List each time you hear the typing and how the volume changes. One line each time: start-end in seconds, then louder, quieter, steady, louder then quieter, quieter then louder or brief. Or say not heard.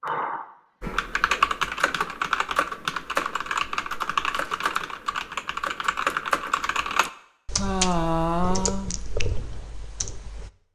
0.8-10.5 quieter.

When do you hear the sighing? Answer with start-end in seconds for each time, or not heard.
0.0-0.9, 7.5-8.9.